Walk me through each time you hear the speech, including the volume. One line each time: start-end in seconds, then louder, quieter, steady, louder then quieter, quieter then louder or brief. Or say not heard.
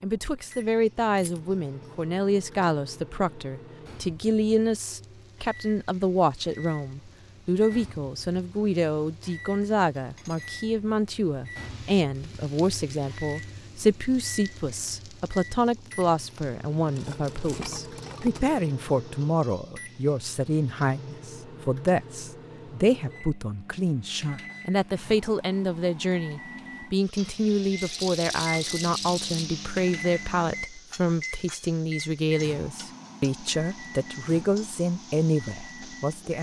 0.0-36.3 steady.